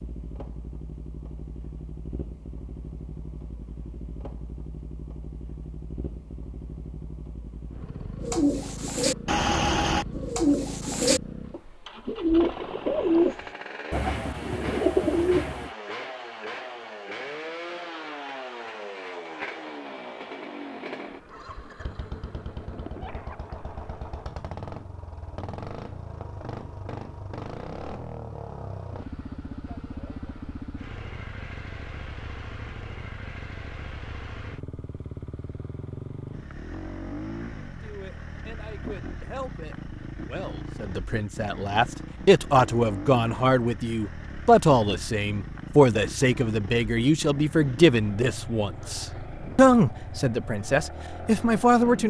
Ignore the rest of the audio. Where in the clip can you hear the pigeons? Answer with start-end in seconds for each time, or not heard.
8.2-15.7.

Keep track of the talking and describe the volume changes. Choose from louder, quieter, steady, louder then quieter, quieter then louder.
louder.